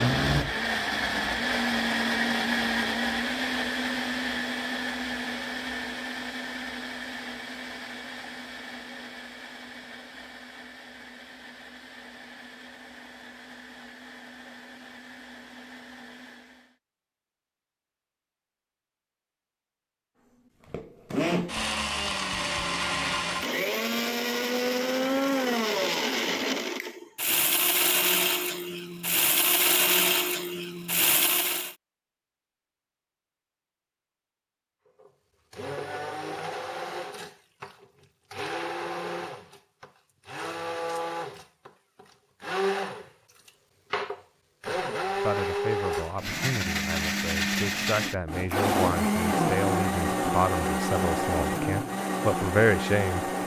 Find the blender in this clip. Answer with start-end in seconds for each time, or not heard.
0.0-16.8, 20.6-31.8, 35.0-53.4.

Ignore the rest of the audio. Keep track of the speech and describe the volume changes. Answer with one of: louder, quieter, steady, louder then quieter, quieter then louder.
louder.